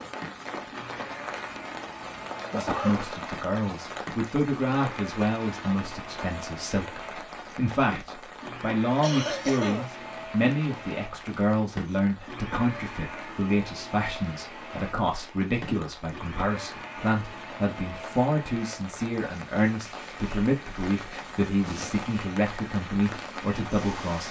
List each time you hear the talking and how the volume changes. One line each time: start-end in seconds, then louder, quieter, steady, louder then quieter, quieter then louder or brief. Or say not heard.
2.5-24.2 steady.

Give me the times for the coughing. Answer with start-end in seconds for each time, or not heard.
2.4-3.0, 9.0-9.9, 21.6-22.1.